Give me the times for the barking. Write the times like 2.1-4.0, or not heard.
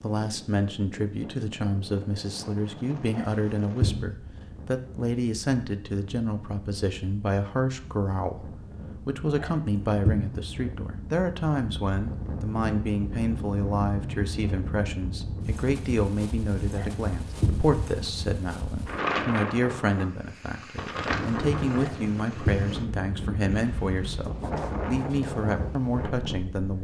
3.1-4.1, 9.4-10.3, 16.8-17.7, 21.8-22.8.